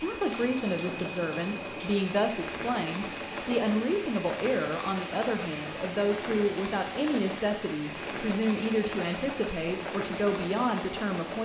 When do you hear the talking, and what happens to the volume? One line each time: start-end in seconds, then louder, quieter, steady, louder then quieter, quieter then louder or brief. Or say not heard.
0.0-11.3 steady.